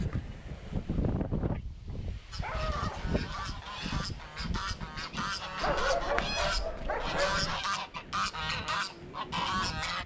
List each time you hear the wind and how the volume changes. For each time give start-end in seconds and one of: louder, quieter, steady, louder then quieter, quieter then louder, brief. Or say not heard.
0.0-10.0 quieter.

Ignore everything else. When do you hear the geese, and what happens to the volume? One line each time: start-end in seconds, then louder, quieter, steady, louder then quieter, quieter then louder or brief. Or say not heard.
2.3-10.0 louder.